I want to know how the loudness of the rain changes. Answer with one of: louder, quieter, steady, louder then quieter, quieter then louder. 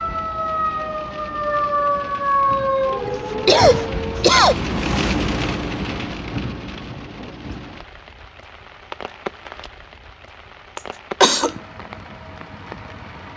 louder then quieter.